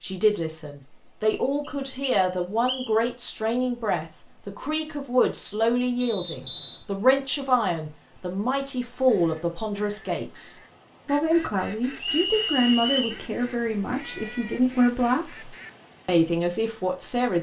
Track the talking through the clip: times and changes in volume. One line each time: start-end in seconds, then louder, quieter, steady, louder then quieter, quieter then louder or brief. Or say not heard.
0.0-17.3 steady.